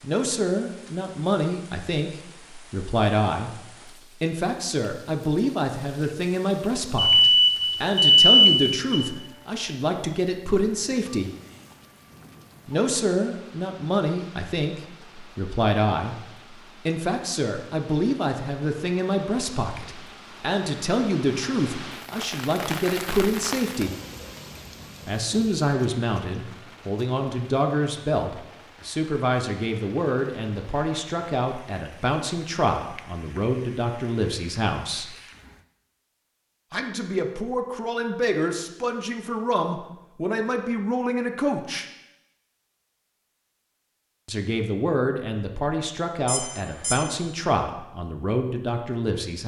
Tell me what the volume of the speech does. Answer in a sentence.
The loudness of the speech stays about the same.